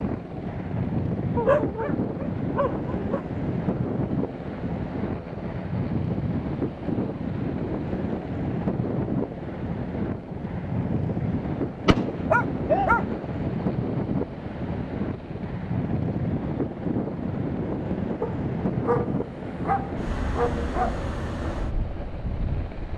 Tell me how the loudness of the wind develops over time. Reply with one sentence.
The loudness of the wind stays about the same.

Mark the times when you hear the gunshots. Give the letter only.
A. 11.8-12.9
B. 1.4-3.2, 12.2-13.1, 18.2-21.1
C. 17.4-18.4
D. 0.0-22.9
A.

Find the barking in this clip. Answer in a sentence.
You can hear the barking from 1.4 to 3.2 s, from 12.2 to 13.1 s and from 18.2 to 21.1 s.